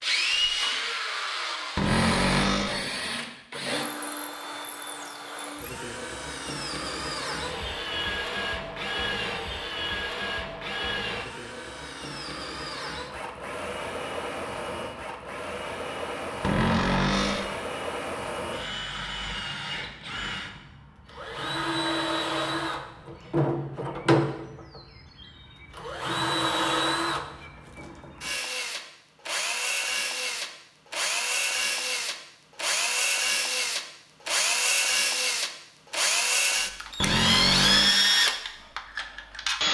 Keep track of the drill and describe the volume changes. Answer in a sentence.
The loudness of the drill goes up.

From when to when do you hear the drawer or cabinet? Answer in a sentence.
You can hear the drawer or cabinet from 1.8 to 2.9 s, from 16.4 to 17.6 s and from 37.0 to 38.0 s.